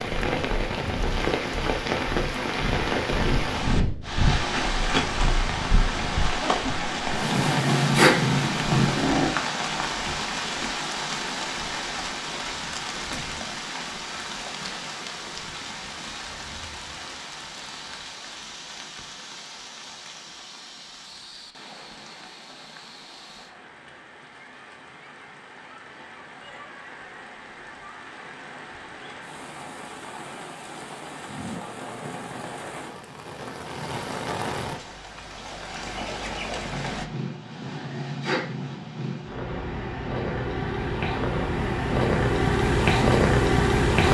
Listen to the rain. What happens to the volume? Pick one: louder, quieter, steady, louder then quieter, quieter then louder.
quieter then louder.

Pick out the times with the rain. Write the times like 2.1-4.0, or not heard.
0.0-37.0.